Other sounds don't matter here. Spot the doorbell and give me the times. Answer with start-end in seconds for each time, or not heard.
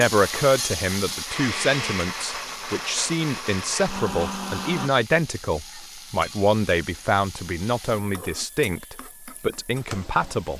not heard.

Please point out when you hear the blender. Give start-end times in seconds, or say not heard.
0.1-4.9.